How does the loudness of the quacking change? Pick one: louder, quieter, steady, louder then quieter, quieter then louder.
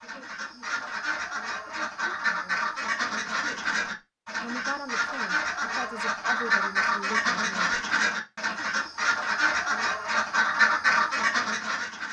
louder.